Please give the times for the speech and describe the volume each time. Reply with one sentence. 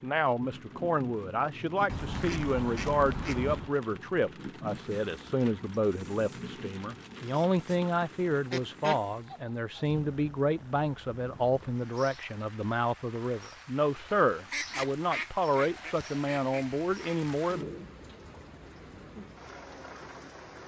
You can hear the speech from 0.0 to 17.6 s, at a steady volume.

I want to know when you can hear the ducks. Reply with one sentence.
The ducks can be heard from 1.9 to 3.8 s, from 8.4 to 9.9 s and from 14.5 to 17.2 s.